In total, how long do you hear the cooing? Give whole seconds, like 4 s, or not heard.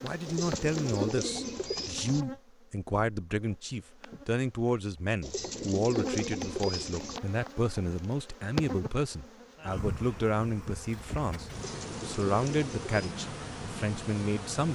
6 s.